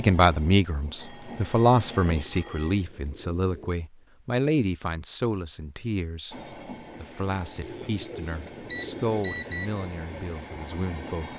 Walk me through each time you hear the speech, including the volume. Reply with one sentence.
The speech can be heard from 0.0 to 11.3 s, getting quieter.